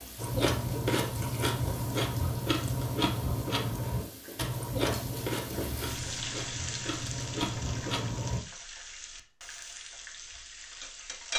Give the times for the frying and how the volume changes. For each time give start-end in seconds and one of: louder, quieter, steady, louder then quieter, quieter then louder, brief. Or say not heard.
0.0-11.3 louder then quieter.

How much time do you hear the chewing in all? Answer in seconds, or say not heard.
8 s.